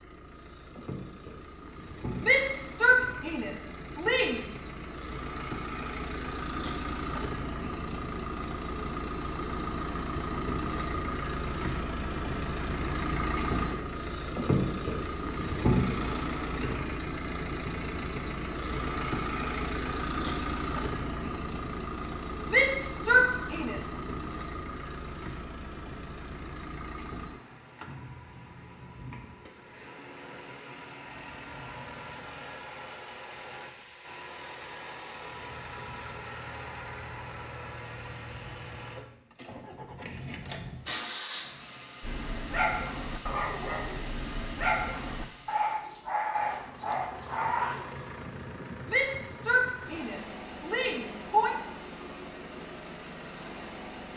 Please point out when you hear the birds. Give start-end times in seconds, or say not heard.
not heard.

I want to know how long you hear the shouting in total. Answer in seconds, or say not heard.
6 s.